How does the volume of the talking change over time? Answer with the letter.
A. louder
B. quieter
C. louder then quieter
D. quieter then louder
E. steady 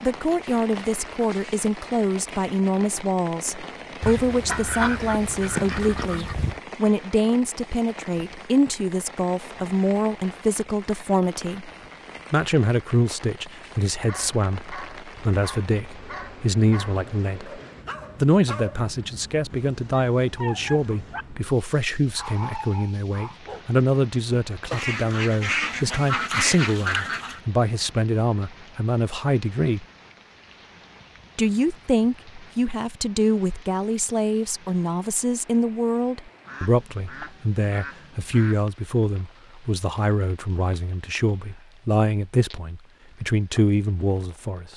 E.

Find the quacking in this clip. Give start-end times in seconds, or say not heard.
4.0-6.6, 24.7-27.4, 36.5-38.6.